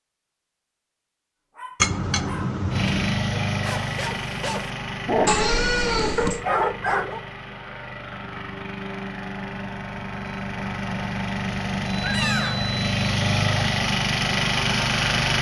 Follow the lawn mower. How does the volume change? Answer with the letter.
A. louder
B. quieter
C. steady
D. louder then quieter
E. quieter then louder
E.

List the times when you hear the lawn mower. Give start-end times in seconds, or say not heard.
2.7-15.3.